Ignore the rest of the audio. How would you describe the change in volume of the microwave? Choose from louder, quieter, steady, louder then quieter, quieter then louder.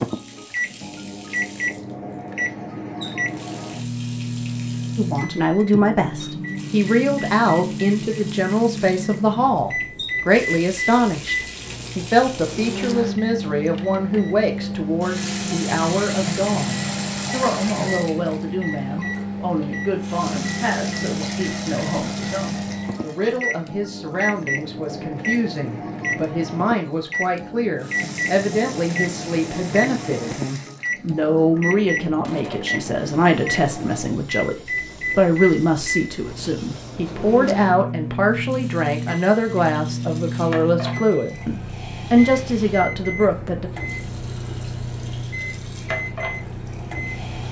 steady.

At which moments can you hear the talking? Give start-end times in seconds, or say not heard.
5.0-43.7.